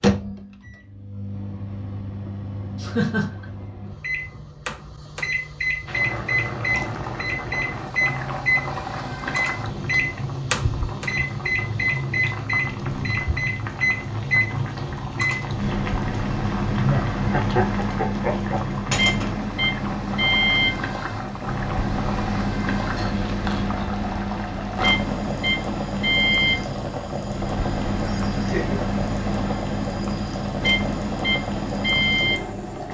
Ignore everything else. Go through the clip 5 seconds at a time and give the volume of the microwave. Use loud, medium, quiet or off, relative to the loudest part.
medium, loud, loud, loud, loud, loud, loud.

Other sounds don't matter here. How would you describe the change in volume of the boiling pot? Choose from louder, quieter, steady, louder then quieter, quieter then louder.
steady.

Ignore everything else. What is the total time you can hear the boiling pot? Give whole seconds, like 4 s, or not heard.
27 s.